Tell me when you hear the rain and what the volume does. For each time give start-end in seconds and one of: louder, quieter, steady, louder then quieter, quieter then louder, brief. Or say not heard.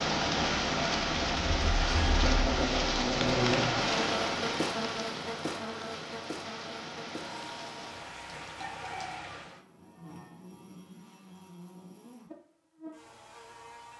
0.0-9.7 quieter.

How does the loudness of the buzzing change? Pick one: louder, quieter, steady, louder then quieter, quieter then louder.
quieter.